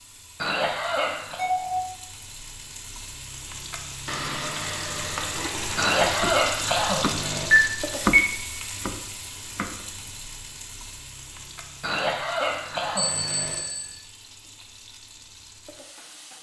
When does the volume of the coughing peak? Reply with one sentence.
The loudest moment of the coughing is at 6 seconds.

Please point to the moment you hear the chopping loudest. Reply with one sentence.
The loudest moment of the chopping is at 8 seconds.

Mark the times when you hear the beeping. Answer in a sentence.
The beeping can be heard from 1.4 to 1.8 s, from 7.5 to 8.3 s and from 12.9 to 13.9 s.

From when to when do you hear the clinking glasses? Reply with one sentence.
The clinking glasses can't be heard in this clip.